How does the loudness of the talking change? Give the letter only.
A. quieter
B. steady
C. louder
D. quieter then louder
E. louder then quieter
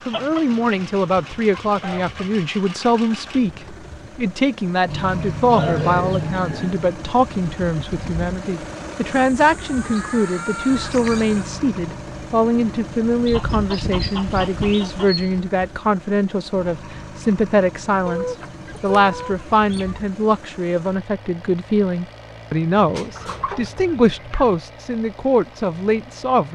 B.